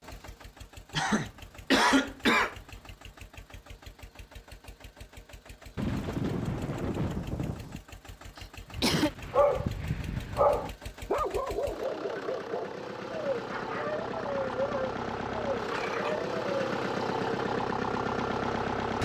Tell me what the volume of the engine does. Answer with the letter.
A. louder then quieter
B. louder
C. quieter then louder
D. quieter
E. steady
B.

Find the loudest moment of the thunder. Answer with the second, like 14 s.
6 s.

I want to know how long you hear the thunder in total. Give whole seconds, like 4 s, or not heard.
2 s.